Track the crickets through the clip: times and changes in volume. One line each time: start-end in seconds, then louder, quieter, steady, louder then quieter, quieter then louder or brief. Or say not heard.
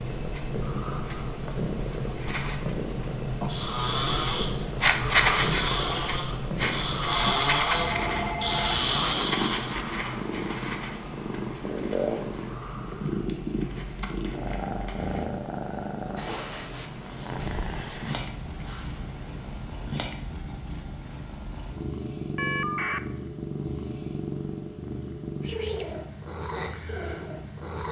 0.0-27.8 quieter.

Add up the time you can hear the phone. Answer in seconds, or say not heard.
2 s.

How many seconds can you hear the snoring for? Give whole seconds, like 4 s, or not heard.
6 s.